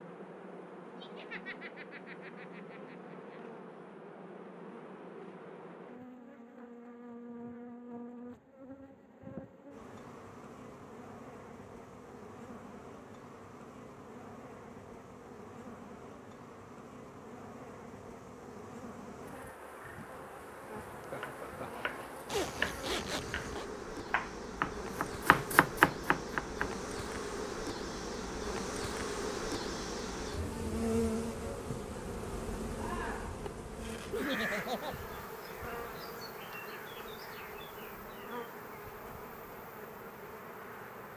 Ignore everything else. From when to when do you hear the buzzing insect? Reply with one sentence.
You can hear the buzzing insect from 0.0 to 41.1 s.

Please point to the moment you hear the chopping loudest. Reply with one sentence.
The volume of the chopping peaks at 26 seconds.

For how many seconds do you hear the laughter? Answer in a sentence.
The laughter can be heard for 4 seconds in total.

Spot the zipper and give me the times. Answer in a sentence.
You can hear the zipper from 22.2 to 23.6 s.